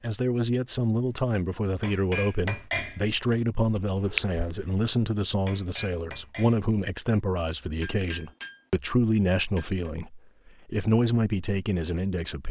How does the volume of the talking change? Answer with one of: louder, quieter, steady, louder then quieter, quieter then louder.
steady.